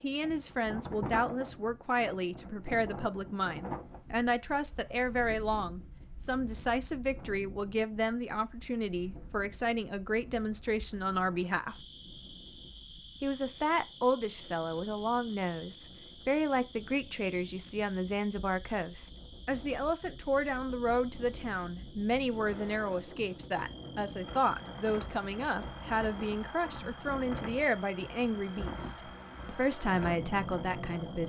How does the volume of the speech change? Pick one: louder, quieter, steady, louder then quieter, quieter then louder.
steady.